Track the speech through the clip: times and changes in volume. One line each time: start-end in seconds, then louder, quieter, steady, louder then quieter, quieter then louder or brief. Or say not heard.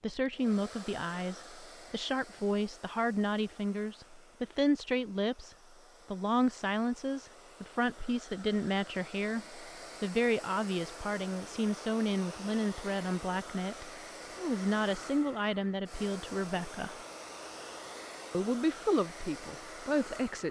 0.0-16.9 steady
18.3-20.4 brief.